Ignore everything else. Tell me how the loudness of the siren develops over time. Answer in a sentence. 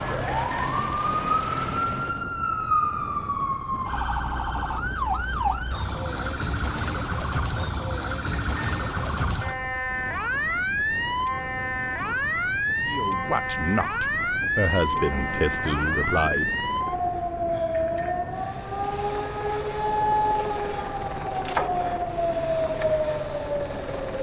The loudness of the siren stays about the same.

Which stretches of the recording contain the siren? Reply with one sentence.
You can hear the siren from 0.0 to 24.1 s.